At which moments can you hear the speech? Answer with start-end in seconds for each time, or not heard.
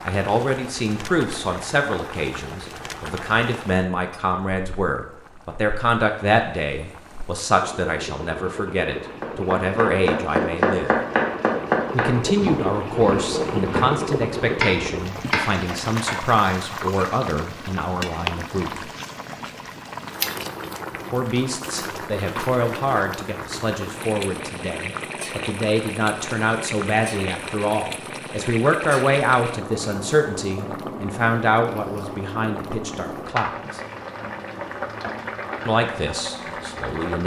0.1-10.9, 11.9-18.9, 21.1-33.8, 35.6-37.2.